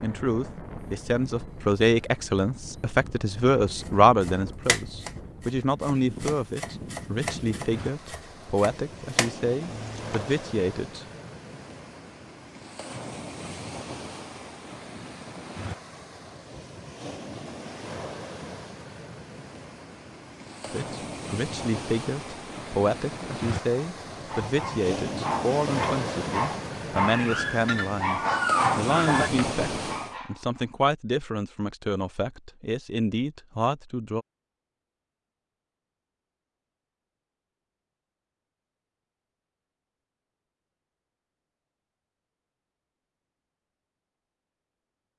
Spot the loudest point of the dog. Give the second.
29 s.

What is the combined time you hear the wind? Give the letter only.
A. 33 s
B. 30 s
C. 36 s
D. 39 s
B.